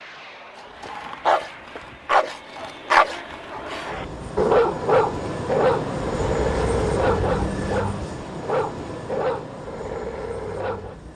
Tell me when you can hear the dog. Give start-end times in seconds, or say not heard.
0.6-10.9.